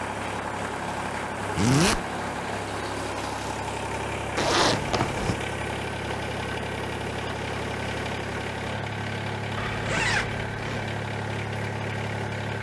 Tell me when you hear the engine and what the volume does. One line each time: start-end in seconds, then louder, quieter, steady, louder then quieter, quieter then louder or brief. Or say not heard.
0.0-12.5 steady.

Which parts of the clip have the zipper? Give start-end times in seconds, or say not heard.
1.6-2.0, 4.3-5.3, 9.6-10.9.